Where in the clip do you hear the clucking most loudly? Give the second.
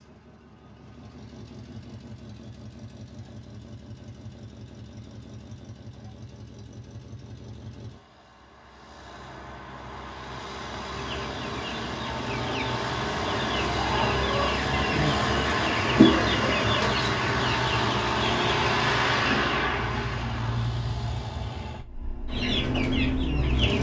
16 s.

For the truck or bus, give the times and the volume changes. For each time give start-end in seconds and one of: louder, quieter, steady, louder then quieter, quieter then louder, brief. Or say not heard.
0.0-23.7 louder.